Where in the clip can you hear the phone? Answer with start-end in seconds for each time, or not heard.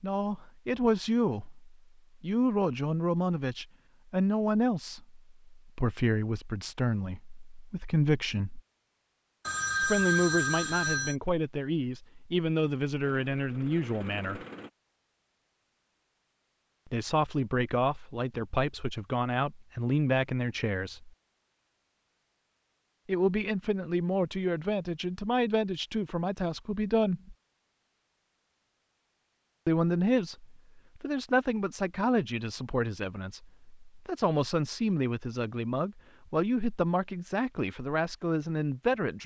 9.4-11.2.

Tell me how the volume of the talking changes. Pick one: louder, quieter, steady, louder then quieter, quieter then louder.
steady.